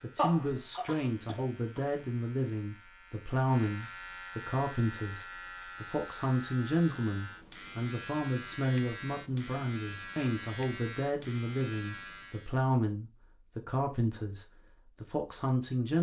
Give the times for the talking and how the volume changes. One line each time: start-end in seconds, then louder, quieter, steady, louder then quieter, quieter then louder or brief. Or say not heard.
0.0-15.9 steady.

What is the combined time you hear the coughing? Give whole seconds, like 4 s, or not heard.
2 s.